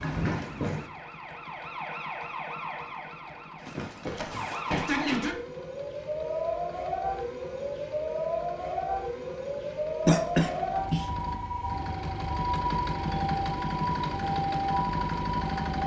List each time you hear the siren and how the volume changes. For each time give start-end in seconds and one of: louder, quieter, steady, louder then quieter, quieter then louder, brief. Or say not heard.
0.0-15.8 louder.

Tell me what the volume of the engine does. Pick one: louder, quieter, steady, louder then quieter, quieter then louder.
louder.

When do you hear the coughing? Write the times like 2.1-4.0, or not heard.
10.1-11.1.